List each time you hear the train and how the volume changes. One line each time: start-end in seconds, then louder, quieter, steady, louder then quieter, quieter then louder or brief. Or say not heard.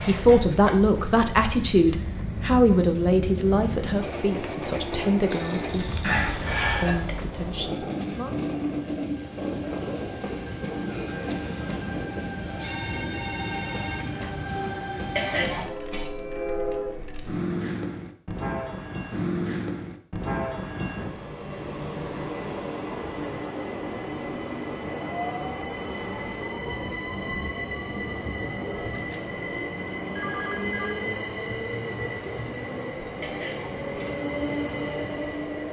0.0-35.6 steady.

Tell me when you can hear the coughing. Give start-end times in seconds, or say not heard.
6.0-7.1, 15.2-16.1, 33.2-34.1.